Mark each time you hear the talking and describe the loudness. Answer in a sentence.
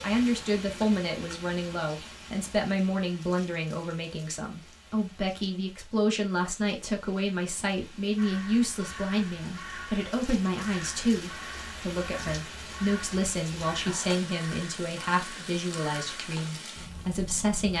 The talking can be heard from 0.0 to 17.7 s, at a steady volume.